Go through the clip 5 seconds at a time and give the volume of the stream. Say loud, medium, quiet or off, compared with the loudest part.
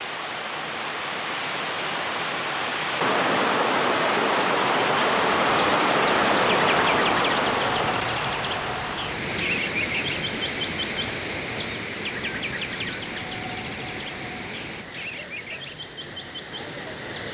loud, loud, medium, quiet.